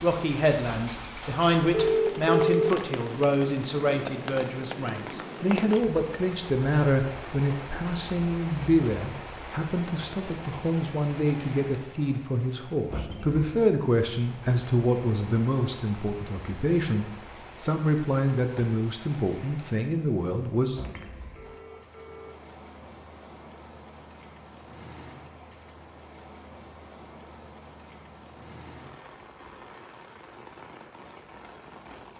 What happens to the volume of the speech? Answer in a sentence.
The volume of the speech stays about the same.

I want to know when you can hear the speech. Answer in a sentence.
The speech can be heard from 0.0 to 20.9 s.